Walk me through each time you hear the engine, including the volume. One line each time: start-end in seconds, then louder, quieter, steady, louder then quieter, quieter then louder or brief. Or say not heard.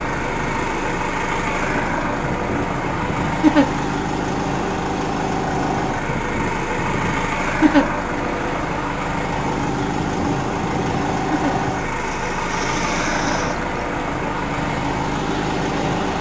0.0-16.1 steady.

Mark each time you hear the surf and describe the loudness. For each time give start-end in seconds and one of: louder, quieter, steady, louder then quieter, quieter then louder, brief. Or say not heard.
0.0-16.1 steady.